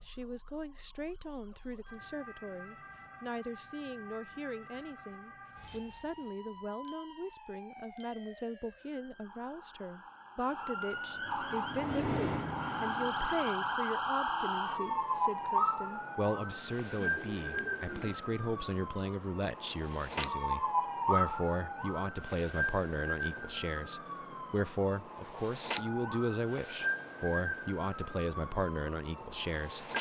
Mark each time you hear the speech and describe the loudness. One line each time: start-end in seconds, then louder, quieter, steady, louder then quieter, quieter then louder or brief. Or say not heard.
0.0-29.9 louder.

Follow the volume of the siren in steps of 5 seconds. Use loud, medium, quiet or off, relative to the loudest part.
quiet, quiet, loud, loud, loud, loud.